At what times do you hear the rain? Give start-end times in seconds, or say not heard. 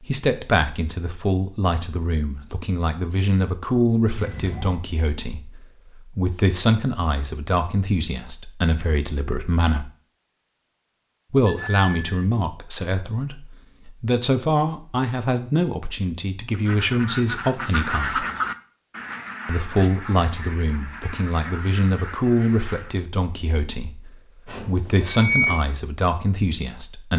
not heard.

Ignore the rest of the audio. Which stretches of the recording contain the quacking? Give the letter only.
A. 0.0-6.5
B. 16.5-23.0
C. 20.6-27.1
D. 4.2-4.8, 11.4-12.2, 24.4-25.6
B.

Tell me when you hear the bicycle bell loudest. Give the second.
25 s.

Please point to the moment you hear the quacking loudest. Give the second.
18 s.